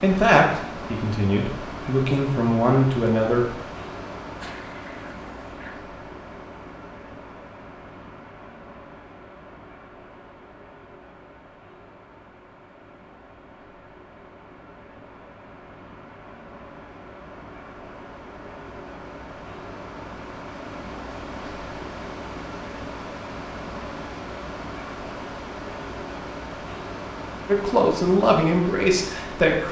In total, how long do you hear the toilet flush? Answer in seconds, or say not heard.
2 s.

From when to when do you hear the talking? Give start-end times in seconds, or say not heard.
0.0-3.5, 27.4-29.6.